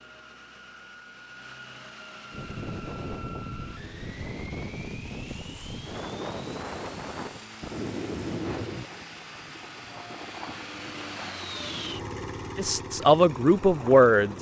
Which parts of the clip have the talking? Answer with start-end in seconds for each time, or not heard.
12.6-14.3.